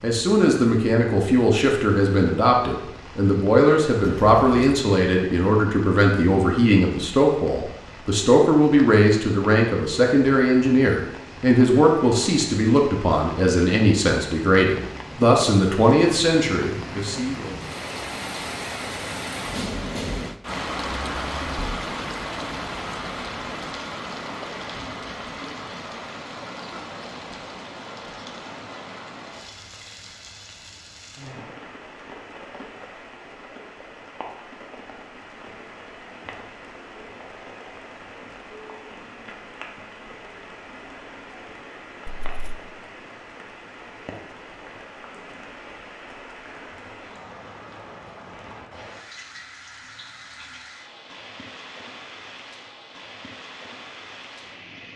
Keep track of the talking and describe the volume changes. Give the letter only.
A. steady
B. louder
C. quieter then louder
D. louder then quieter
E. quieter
A.